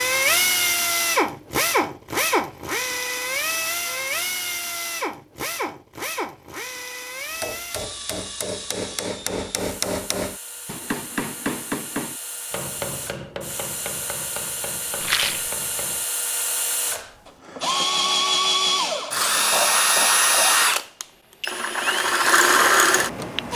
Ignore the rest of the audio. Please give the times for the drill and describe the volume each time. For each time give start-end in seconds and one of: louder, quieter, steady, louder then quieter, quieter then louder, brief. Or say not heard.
0.0-23.5 quieter then louder.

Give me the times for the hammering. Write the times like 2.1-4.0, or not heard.
7.4-16.1.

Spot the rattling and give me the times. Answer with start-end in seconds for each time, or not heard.
15.0-15.5.